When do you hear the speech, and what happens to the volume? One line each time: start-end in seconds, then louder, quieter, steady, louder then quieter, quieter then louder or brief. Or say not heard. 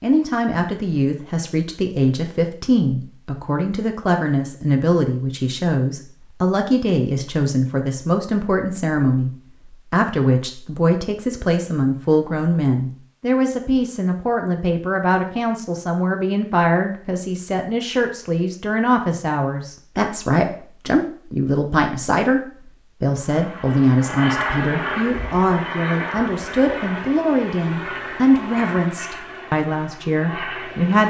0.0-31.0 steady.